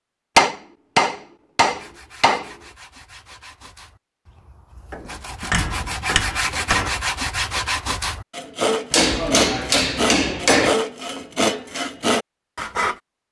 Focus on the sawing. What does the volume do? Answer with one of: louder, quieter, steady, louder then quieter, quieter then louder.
louder.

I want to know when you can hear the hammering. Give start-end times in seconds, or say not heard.
0.3-2.5, 4.9-6.9, 8.9-10.8.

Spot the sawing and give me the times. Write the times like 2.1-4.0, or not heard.
1.6-13.0.